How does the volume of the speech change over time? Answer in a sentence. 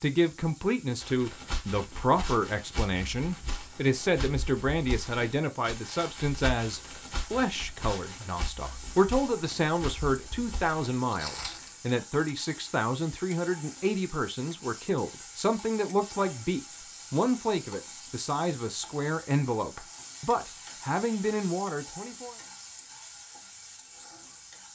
The loudness of the speech stays about the same.